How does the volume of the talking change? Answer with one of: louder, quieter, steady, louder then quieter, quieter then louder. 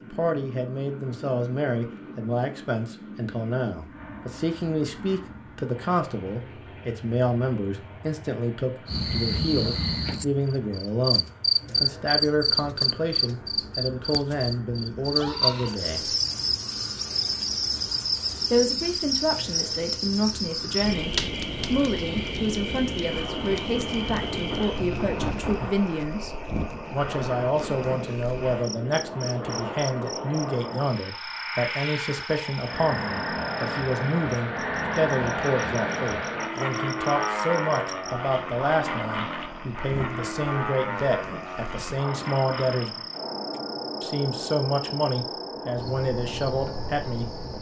steady.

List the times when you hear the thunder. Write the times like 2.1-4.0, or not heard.
24.1-25.7.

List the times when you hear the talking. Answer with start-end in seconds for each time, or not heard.
0.0-16.1, 18.5-43.0, 44.0-47.3.